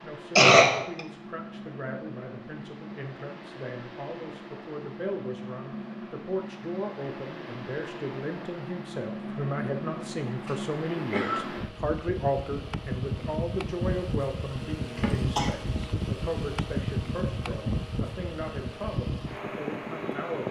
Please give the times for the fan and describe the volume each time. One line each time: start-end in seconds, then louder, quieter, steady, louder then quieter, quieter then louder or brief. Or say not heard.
0.0-20.4 louder.